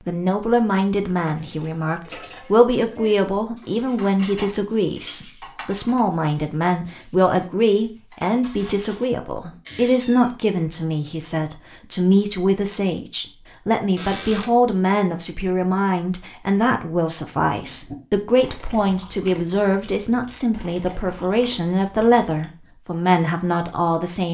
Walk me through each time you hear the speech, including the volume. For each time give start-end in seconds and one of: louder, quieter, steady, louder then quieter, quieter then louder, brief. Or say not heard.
0.1-24.2 steady.